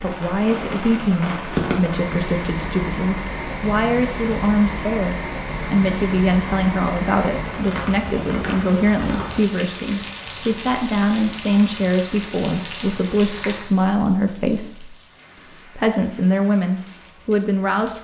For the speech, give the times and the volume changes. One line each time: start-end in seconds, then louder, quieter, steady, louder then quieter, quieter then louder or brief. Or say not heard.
0.0-14.9 steady
15.8-17.9 brief.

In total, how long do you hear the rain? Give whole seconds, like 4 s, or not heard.
18 s.